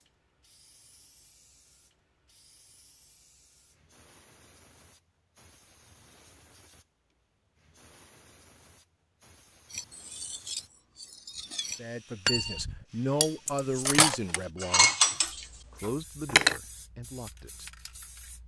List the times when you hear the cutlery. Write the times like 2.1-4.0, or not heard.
9.7-16.6.